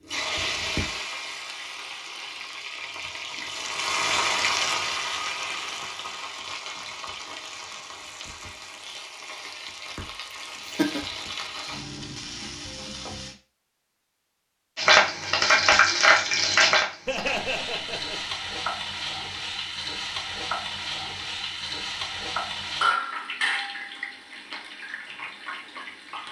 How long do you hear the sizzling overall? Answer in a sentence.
The sizzling can be heard for 25 seconds in total.